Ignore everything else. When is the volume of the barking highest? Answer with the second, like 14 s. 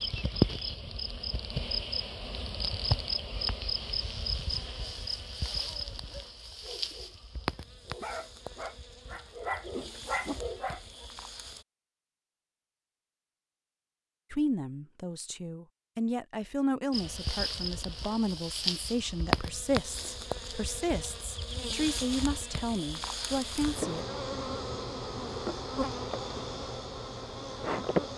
10 s.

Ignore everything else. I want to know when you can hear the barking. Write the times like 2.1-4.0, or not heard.
5.4-11.1.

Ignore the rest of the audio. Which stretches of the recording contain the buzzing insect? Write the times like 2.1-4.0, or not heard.
0.0-11.7, 16.9-28.1.